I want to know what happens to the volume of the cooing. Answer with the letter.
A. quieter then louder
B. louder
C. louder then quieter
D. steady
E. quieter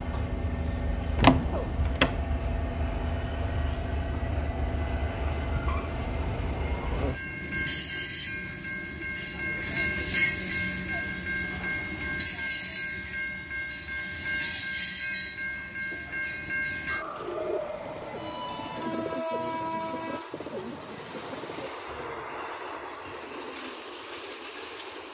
E.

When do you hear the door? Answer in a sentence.
The door can be heard from 1.1 to 2.2 s.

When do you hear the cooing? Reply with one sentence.
You can hear the cooing from 16.9 to 23.9 s.